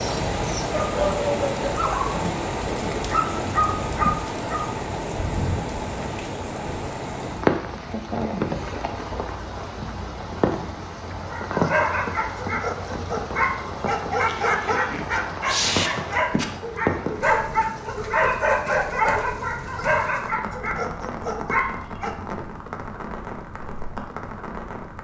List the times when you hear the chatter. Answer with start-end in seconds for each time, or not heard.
not heard.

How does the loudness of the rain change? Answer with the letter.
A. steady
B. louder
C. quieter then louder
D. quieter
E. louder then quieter
D.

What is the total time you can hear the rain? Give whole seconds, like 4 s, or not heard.
25 s.